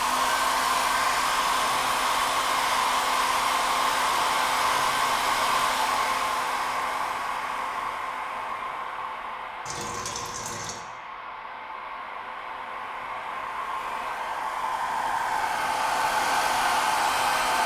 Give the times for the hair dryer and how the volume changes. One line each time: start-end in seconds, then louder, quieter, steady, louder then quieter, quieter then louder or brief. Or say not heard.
0.0-17.6 quieter then louder.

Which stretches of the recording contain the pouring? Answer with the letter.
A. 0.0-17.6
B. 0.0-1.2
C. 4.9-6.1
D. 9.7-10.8
D.